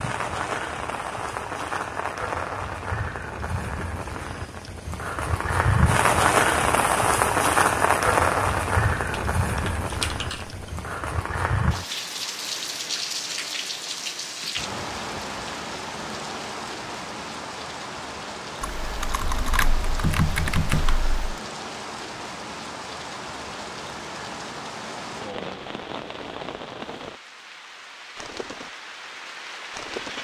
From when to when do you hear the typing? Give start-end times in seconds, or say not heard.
9.1-10.7, 18.6-21.4.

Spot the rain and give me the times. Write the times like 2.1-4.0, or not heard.
0.0-30.1.